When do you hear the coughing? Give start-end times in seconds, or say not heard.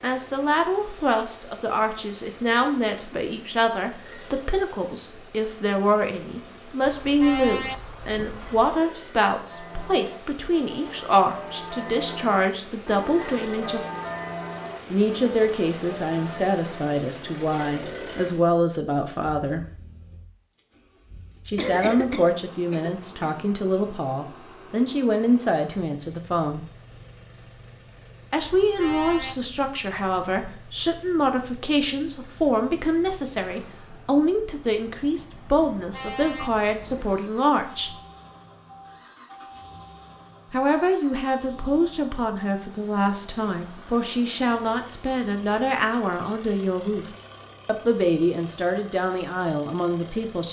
21.6-23.4.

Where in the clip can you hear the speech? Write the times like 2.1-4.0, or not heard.
0.0-13.8, 14.9-19.6, 21.4-26.6, 28.3-38.0, 40.5-47.0, 47.6-50.4.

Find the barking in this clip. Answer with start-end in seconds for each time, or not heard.
not heard.